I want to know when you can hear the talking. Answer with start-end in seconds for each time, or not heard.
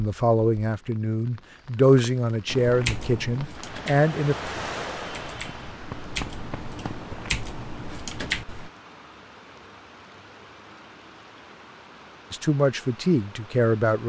0.0-4.3, 12.3-14.0.